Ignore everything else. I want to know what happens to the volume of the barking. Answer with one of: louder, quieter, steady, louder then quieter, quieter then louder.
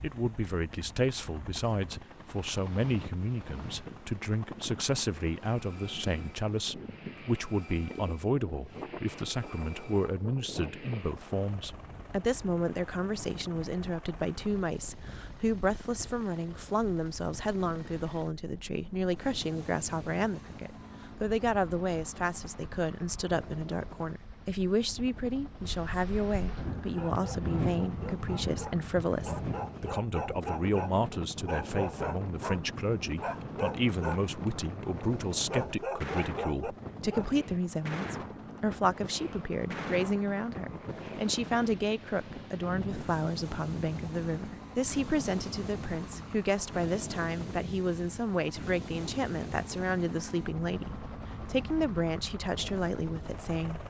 louder.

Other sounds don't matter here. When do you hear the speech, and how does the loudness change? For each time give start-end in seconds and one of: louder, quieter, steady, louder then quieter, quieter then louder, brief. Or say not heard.
0.0-53.8 steady.